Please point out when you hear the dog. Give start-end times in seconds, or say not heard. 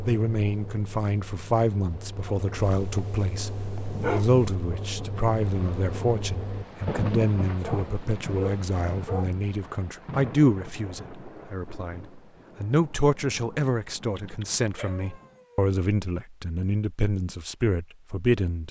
2.5-4.5, 7.5-9.3, 14.2-15.7.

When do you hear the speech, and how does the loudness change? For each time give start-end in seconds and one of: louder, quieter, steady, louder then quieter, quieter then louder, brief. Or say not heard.
0.0-18.6 steady.